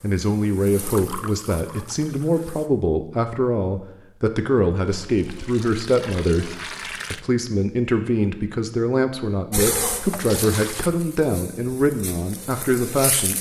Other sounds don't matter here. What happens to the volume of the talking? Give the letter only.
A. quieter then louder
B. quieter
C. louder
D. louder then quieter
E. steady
E.